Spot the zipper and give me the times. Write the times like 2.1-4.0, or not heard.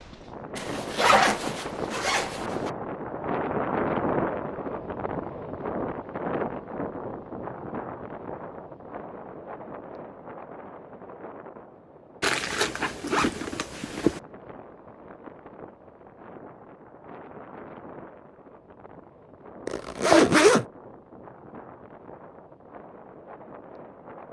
0.6-2.7, 12.2-14.2, 19.6-20.6.